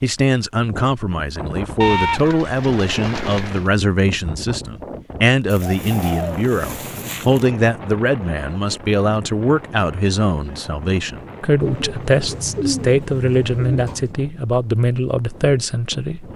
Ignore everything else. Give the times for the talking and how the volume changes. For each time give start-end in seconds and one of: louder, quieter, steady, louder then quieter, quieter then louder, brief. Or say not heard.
0.0-16.3 steady.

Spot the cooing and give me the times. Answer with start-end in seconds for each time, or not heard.
1.8-3.7, 5.5-7.4, 11.6-14.1.